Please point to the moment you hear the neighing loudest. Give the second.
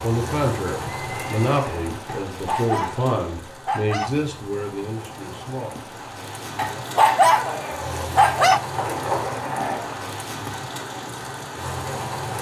9 s.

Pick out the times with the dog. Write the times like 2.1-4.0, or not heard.
2.0-4.1, 6.5-8.6.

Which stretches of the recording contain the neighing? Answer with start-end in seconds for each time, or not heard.
1.1-1.9, 8.8-10.1.